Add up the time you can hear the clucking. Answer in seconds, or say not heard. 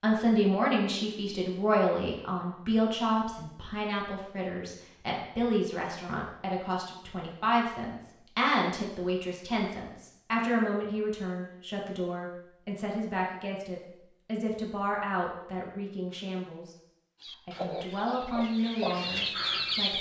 3 s.